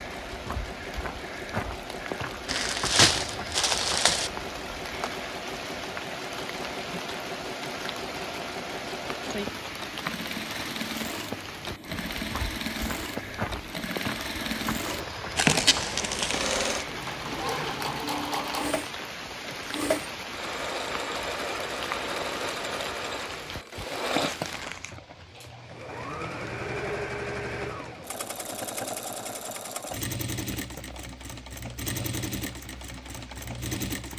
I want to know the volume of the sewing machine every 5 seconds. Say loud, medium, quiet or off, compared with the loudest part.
medium, medium, loud, loud, loud, loud, loud.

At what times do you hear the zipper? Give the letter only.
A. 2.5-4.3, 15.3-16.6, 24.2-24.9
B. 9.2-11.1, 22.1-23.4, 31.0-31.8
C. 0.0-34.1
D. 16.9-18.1
D.